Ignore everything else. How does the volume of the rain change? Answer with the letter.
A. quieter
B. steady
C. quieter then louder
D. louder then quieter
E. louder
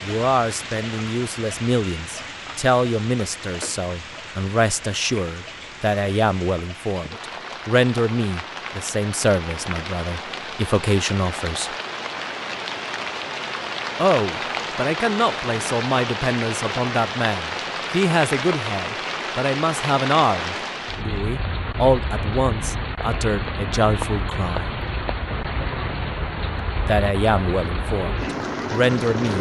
E.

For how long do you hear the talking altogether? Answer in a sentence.
The talking can be heard for 25 seconds in total.